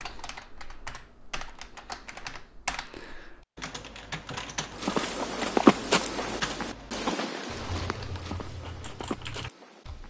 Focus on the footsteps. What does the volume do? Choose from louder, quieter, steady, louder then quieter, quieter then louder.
quieter.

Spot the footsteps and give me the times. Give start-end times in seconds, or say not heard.
4.7-10.0.